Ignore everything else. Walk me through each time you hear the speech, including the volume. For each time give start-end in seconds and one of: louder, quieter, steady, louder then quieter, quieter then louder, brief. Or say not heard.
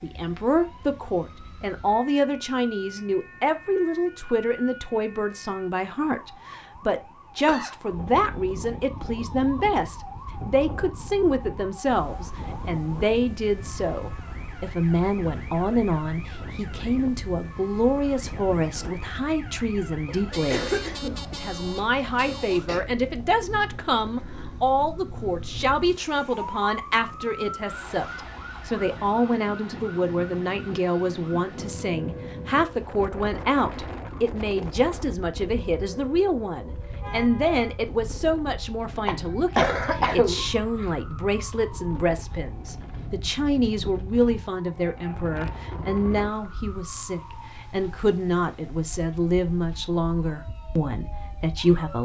0.0-52.0 steady.